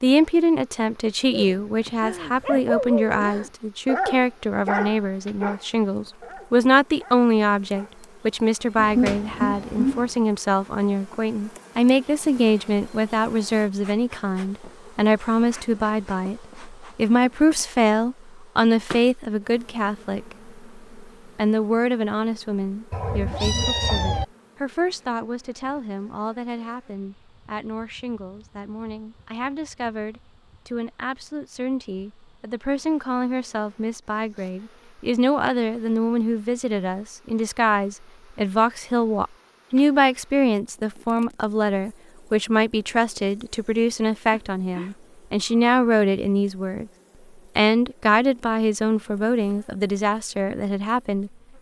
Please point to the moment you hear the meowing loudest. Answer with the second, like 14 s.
9 s.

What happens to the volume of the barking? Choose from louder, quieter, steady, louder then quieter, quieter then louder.
quieter.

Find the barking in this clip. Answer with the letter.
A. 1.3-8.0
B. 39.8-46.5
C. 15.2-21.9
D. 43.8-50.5
A.